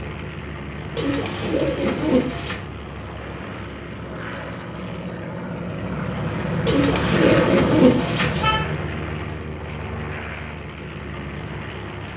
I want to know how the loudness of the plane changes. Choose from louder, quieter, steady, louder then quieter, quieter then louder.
louder then quieter.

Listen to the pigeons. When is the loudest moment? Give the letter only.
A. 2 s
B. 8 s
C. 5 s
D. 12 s
B.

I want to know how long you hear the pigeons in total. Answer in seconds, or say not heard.
4 s.